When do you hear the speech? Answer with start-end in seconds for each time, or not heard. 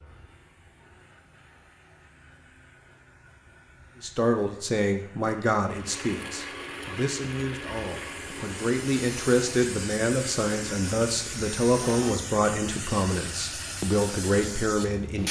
4.0-15.2.